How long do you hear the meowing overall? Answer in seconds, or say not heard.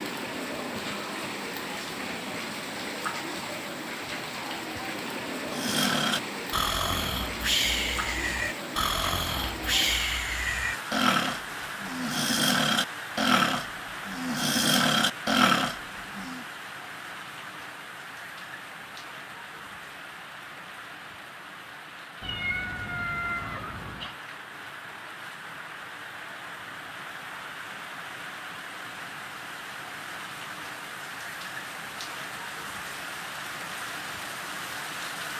2 s.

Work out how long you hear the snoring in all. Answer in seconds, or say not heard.
11 s.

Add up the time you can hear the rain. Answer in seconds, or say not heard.
35 s.